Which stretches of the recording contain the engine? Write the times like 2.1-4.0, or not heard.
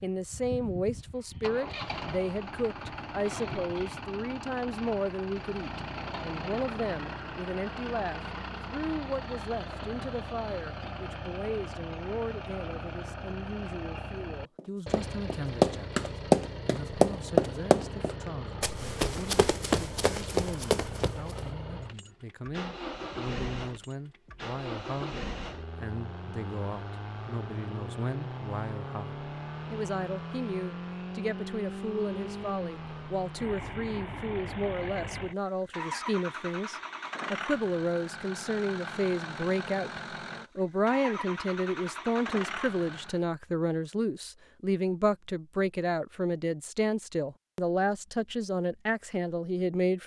0.0-43.2.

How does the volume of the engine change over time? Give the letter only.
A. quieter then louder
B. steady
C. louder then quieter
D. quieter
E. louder
B.